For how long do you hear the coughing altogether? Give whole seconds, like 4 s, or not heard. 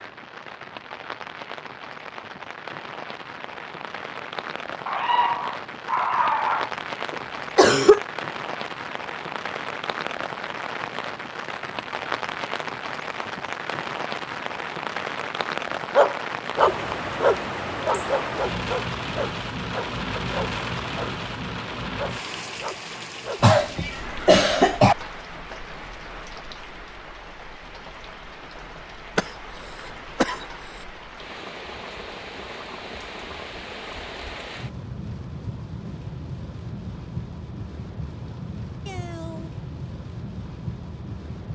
4 s.